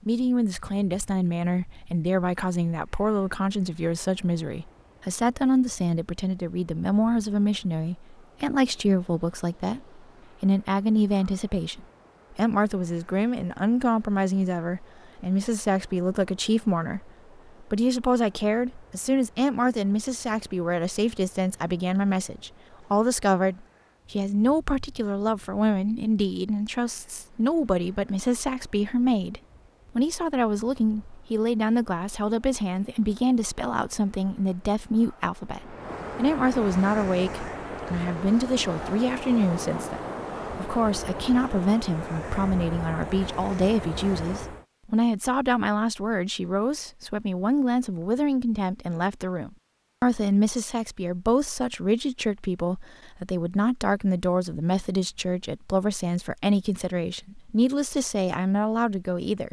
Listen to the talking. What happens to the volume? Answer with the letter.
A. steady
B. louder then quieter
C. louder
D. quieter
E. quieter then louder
A.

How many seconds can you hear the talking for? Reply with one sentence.
The talking can be heard for 59 seconds in total.